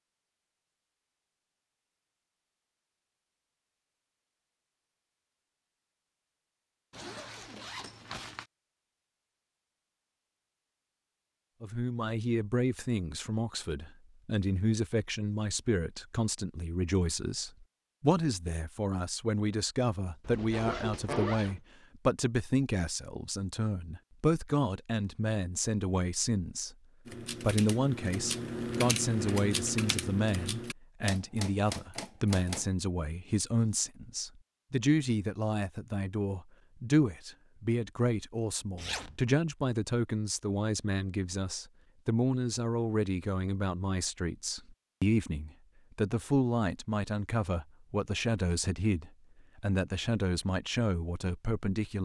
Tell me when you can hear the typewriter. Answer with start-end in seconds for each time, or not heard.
27.1-32.8.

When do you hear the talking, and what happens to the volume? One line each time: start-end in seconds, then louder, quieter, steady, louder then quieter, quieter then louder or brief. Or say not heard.
11.6-26.8 steady
27.4-51.9 steady.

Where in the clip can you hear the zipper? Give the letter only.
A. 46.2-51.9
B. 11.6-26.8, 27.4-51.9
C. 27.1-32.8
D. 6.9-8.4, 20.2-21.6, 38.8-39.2
D.